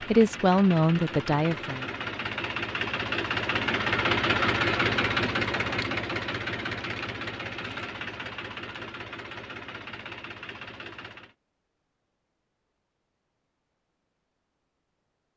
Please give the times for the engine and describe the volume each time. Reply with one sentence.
You can hear the engine from 0.0 to 11.3 s, getting louder then quieter.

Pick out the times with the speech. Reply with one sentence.
You can hear the speech from 0.1 to 1.9 s.